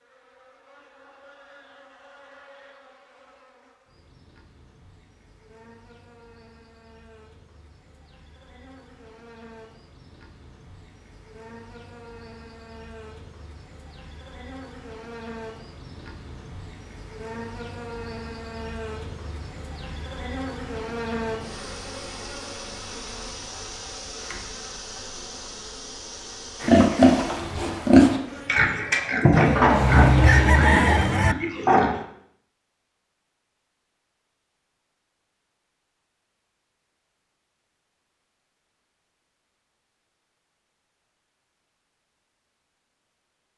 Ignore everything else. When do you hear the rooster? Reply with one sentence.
You can hear the rooster from 29.3 to 31.4 s.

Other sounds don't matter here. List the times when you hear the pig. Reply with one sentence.
You can hear the pig from 26.6 to 32.0 s.